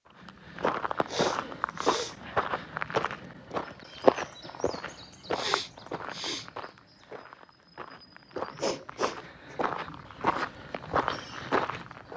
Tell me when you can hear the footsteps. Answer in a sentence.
You can hear the footsteps from 0.2 to 12.1 s.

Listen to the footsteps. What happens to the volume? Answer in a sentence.
The loudness of the footsteps goes down, then up.